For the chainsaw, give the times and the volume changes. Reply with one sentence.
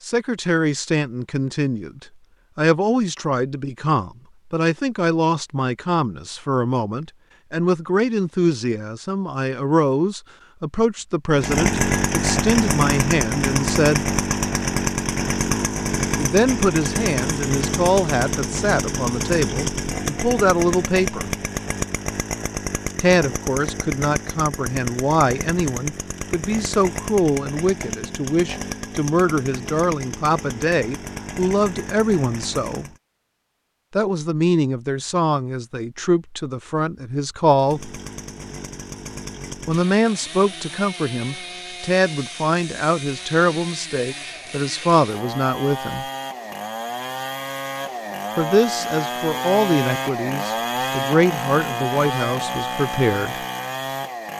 The chainsaw can be heard from 11.3 to 33.0 s, getting quieter; and from 37.5 to 54.3 s, getting louder.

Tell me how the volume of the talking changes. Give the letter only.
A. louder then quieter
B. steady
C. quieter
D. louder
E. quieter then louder
B.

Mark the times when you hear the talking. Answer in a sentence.
You can hear the talking from 0.0 to 14.1 s, from 16.1 to 21.3 s, from 23.0 to 32.9 s, from 34.0 to 37.9 s, from 39.6 to 46.0 s and from 48.4 to 53.4 s.